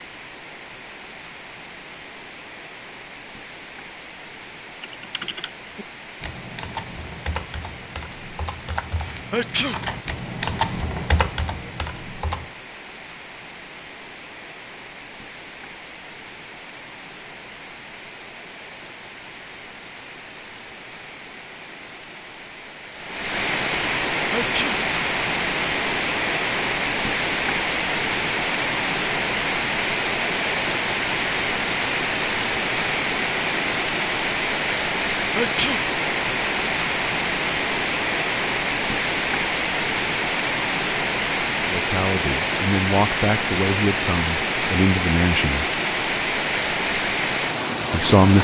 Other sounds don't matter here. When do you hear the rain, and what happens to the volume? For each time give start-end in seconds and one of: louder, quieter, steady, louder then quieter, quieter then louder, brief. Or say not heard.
0.0-48.3 louder.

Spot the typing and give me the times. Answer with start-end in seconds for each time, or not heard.
4.8-12.6.